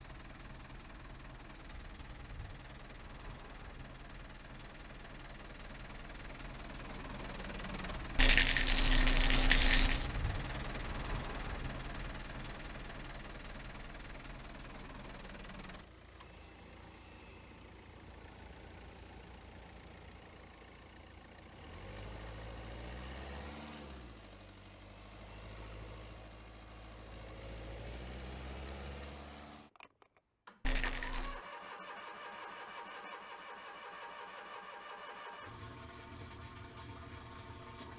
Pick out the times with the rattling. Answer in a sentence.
The rattling can be heard from 8.2 to 10.1 s and from 30.6 to 31.4 s.